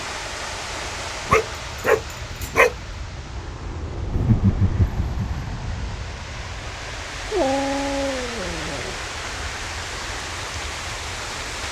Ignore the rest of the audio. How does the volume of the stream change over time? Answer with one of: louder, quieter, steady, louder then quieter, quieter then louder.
quieter then louder.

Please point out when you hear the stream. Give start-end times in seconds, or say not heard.
0.0-11.6.